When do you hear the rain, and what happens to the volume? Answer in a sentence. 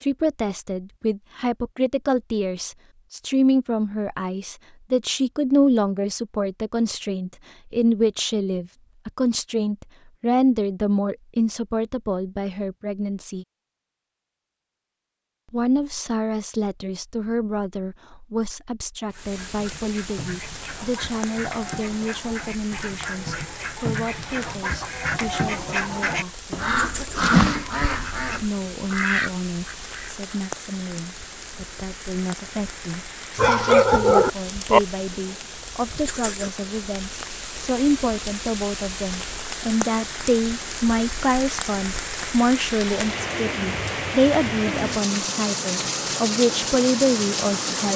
You can hear the rain from 19.1 to 47.9 s, getting louder.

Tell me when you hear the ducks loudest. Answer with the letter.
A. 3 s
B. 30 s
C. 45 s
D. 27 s
D.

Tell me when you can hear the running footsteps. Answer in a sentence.
The running footsteps can't be heard in this clip.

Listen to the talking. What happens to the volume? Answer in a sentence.
The volume of the talking goes down, then up.